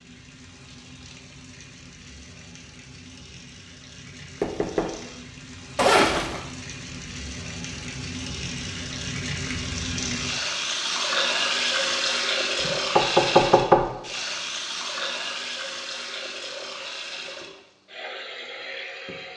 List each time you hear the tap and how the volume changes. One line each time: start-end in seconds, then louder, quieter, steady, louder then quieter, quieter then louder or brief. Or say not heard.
0.0-19.3 louder then quieter.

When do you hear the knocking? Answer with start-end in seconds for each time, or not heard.
4.4-5.0, 12.6-13.8.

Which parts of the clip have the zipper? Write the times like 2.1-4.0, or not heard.
5.8-6.4.